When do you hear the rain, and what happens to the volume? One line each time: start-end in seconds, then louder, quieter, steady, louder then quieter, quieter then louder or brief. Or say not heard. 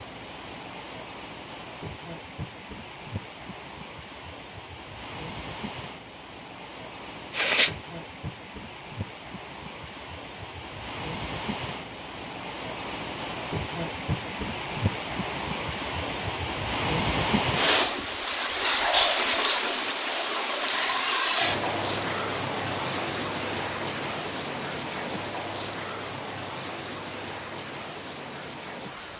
0.0-29.1 louder then quieter.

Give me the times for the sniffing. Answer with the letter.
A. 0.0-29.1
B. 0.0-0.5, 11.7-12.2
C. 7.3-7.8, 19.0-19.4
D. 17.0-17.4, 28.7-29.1
C.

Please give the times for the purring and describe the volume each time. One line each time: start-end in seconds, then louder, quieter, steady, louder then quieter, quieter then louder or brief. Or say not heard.
not heard.